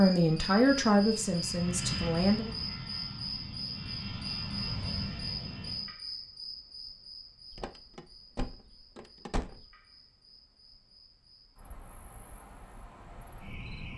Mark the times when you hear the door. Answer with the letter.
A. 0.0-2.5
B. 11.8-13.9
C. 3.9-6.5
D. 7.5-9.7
D.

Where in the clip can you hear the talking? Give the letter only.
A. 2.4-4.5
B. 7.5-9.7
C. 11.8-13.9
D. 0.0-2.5
D.